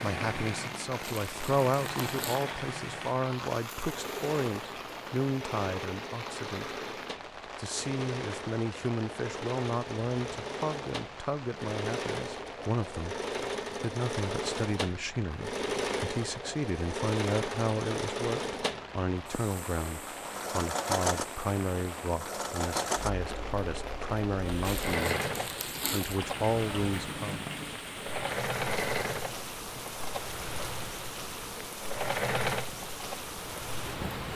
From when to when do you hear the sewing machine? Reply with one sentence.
You can hear the sewing machine from 0.0 to 34.3 s.